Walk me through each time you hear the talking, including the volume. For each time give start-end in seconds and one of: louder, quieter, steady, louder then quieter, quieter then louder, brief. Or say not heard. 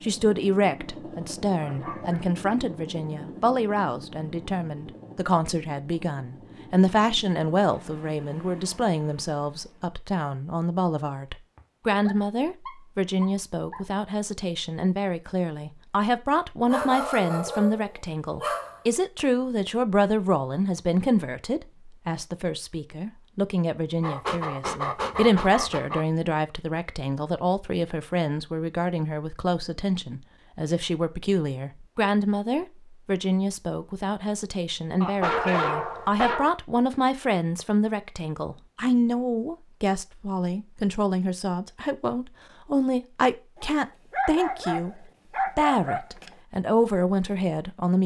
0.0-45.0 steady
45.5-48.0 brief.